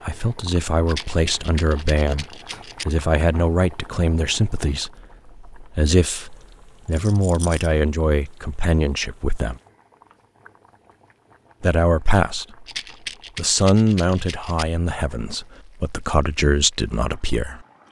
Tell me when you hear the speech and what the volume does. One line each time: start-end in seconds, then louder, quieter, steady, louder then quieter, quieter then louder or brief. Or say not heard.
0.0-9.6 steady
11.6-12.7 brief
13.3-17.6 quieter then louder.